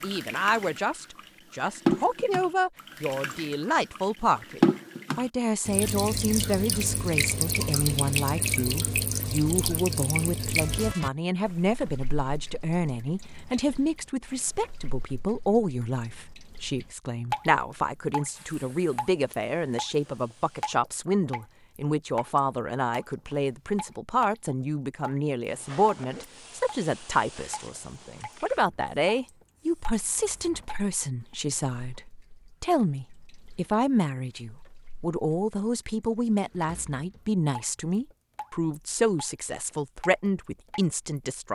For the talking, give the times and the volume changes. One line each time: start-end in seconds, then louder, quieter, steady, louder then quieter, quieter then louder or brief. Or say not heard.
0.0-41.5 steady.